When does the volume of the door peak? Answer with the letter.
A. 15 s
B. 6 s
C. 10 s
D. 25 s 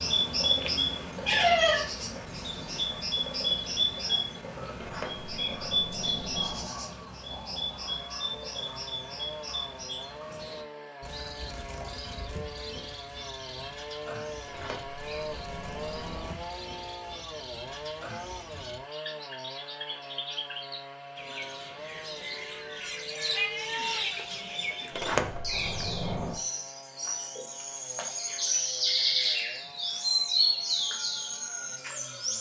D.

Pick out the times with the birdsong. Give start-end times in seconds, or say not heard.
0.0-32.3.